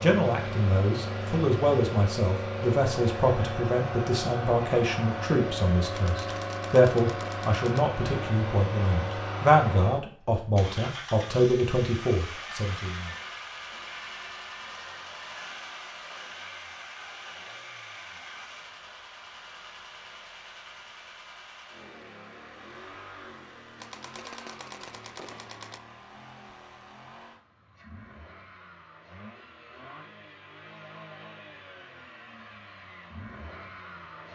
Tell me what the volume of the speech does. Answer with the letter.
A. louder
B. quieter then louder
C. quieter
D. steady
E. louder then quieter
D.